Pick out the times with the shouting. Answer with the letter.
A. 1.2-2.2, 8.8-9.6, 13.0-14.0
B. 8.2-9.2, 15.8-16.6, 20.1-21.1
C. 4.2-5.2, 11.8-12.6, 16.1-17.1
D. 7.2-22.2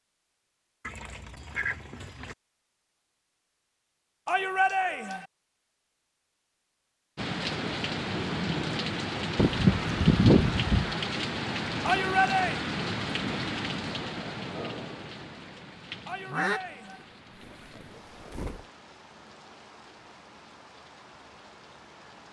C.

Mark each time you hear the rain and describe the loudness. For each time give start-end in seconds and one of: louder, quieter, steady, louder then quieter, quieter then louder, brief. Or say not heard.
7.2-22.2 quieter.